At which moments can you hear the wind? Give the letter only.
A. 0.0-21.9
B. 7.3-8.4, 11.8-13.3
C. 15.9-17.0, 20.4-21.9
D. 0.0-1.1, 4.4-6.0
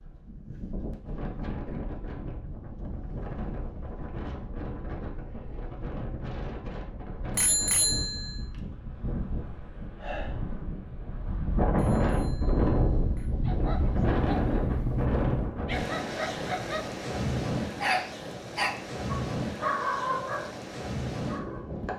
A.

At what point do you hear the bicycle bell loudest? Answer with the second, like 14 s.
8 s.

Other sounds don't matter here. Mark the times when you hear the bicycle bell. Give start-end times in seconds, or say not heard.
7.3-8.4, 11.8-13.3.